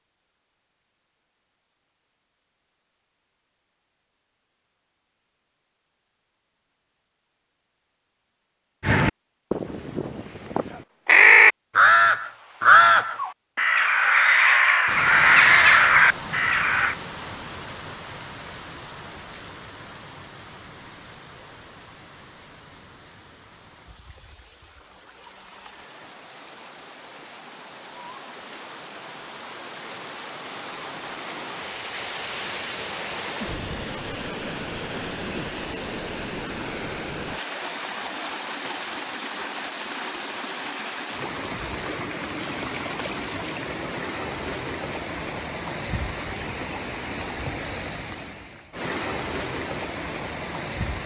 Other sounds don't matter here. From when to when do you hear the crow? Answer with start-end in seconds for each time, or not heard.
8.8-16.9.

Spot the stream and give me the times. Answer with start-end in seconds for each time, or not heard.
14.8-51.0.